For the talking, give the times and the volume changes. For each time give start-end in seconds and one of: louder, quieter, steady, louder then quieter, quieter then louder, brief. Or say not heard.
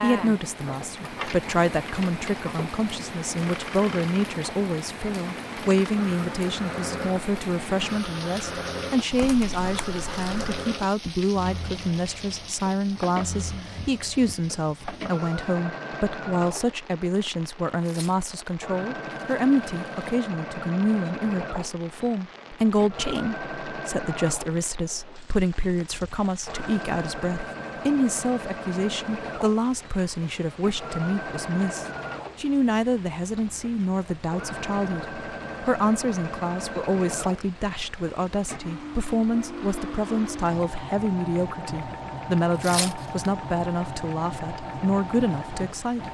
0.0-46.0 steady.